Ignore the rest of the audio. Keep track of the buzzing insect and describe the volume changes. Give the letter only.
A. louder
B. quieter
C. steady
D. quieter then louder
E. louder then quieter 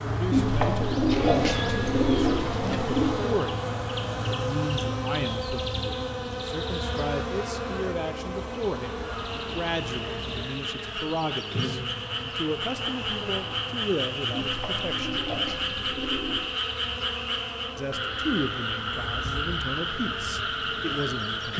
B.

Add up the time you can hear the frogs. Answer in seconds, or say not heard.
12 s.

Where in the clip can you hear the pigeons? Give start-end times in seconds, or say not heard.
0.3-3.1, 14.3-16.6.